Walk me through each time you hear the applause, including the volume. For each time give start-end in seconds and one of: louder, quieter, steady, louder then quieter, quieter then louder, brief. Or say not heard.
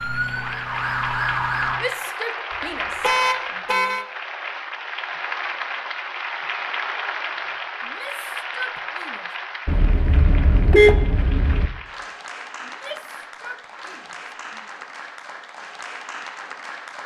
0.0-17.0 quieter.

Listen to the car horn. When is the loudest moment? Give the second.
11 s.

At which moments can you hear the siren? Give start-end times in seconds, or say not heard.
0.0-1.8.